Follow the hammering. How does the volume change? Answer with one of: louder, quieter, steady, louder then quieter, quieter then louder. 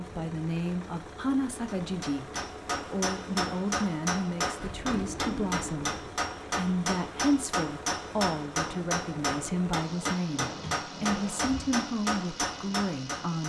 steady.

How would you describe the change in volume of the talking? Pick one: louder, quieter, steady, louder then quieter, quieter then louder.
steady.